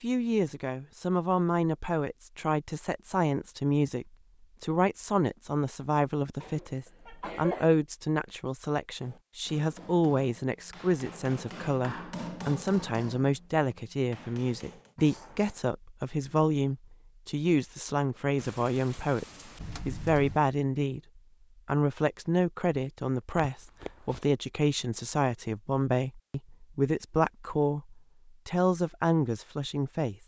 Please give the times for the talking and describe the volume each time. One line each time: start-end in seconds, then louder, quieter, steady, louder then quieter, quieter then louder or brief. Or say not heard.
0.0-19.2 steady
19.9-21.0 brief
21.6-30.1 steady.